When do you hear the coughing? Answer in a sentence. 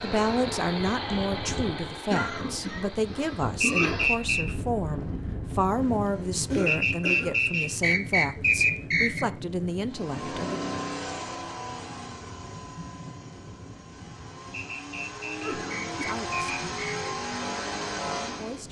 The coughing can be heard from 2.1 to 4.1 s, from 6.5 to 7.4 s and from 15.4 to 15.9 s.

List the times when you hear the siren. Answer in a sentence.
The siren can't be heard in this clip.